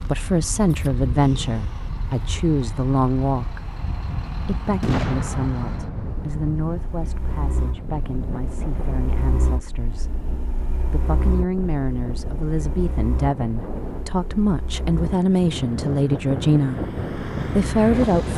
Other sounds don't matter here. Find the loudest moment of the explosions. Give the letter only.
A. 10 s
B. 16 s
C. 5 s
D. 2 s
C.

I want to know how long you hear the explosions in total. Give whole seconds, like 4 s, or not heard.
2 s.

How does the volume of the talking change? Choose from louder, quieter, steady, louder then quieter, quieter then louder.
quieter then louder.